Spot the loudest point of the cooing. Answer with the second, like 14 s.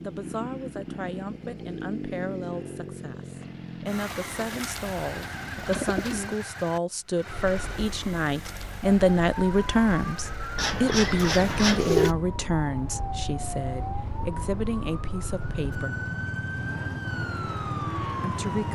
12 s.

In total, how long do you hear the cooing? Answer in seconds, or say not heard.
4 s.